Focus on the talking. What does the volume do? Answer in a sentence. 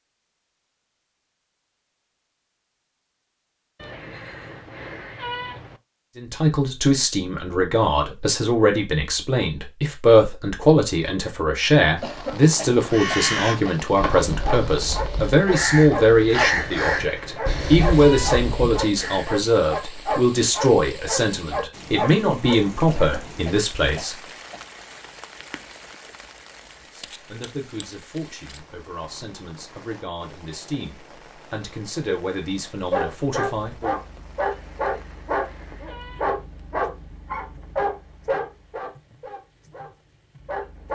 The volume of the talking goes down.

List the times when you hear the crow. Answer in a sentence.
You can hear the crow from 12.8 to 19.3 s.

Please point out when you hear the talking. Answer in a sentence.
The talking can be heard from 6.2 to 24.1 s and from 26.9 to 34.0 s.